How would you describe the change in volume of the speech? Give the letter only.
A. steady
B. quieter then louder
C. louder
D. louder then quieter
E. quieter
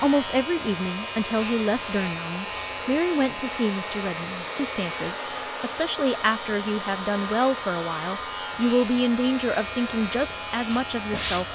A.